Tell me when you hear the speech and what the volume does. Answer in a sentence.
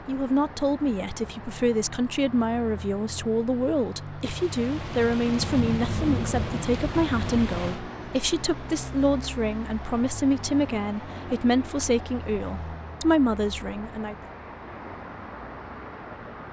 You can hear the speech from 0.1 to 14.2 s, at a steady volume.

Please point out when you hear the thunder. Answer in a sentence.
You can hear the thunder from 4.2 to 7.8 s.